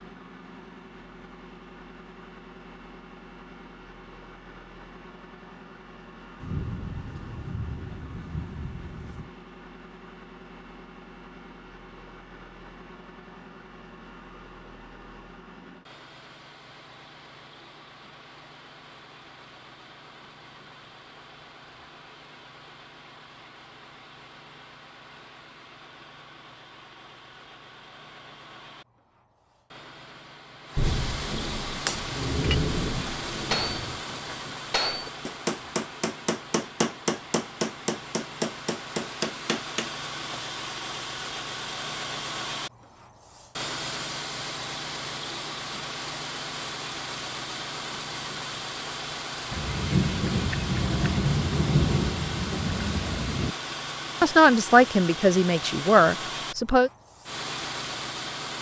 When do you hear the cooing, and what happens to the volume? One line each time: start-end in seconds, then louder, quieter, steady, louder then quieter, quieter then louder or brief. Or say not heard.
not heard.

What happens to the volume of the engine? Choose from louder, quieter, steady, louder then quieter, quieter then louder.
louder.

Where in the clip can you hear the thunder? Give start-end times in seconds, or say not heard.
6.4-9.3, 30.8-34.0, 49.5-53.5.